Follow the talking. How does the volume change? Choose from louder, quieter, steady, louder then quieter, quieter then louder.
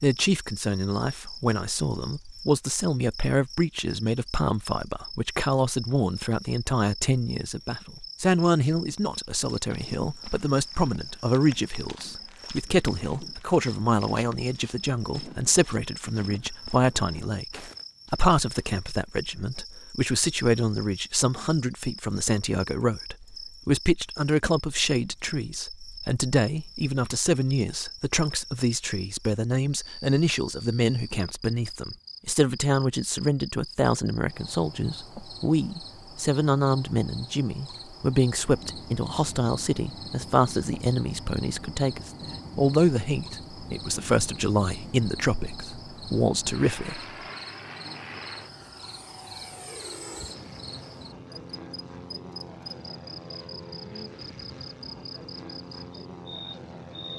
steady.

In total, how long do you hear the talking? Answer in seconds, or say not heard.
47 s.